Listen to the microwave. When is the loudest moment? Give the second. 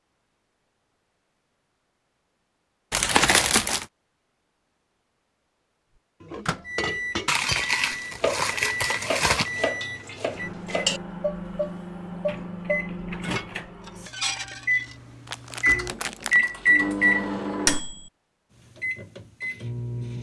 17 s.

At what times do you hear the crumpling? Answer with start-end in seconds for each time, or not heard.
2.9-3.9, 7.2-9.6, 15.2-16.5.